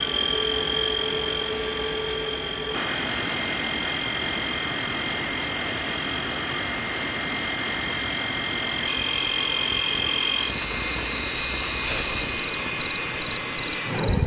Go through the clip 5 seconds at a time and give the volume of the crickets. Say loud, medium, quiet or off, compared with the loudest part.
medium, medium, loud.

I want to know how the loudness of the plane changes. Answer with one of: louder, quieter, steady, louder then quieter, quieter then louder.
steady.